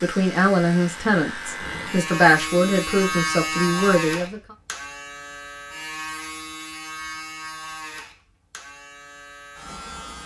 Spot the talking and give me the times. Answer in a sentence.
The talking can be heard from 0.0 to 4.4 s.